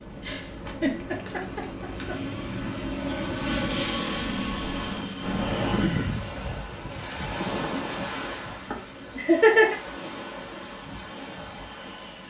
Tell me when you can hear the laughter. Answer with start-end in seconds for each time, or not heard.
0.2-2.1, 8.7-9.8.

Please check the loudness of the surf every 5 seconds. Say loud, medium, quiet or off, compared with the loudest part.
medium, loud, medium.